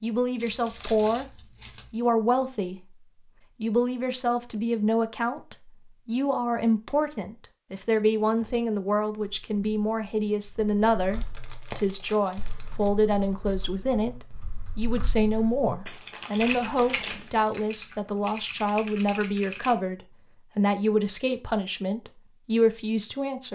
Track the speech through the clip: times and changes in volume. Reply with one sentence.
You can hear the speech briefly from 0.0 to 3.0 s; and from 3.6 to 23.5 s, at a steady volume.